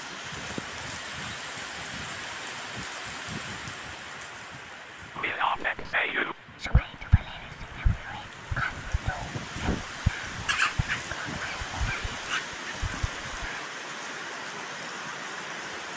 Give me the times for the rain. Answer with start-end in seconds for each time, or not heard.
0.0-15.9.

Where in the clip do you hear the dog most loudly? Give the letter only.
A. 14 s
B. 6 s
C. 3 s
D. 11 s
D.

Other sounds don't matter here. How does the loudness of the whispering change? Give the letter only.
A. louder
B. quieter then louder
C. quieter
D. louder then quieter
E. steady
C.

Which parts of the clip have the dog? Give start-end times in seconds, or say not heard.
10.4-12.8.